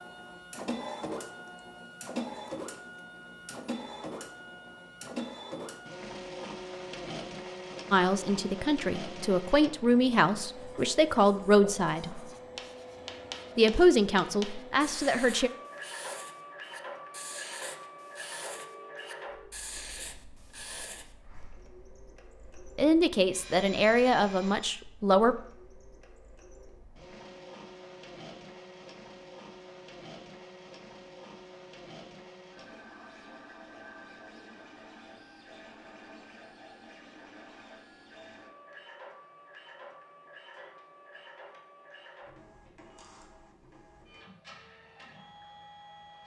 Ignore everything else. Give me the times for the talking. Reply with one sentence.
You can hear the talking from 7.9 to 12.2 s, from 13.6 to 15.5 s and from 22.8 to 25.4 s.